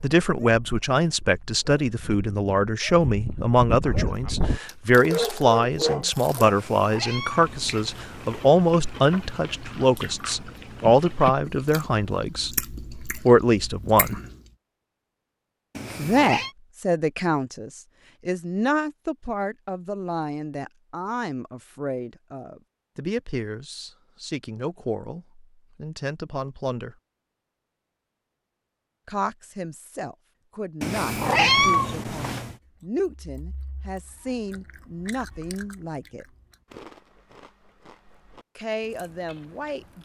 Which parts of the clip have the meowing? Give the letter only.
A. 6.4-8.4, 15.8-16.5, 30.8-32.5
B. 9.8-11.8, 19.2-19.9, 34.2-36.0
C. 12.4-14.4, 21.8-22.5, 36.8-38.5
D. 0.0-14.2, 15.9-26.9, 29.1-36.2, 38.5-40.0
A.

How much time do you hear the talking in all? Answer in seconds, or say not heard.
34 s.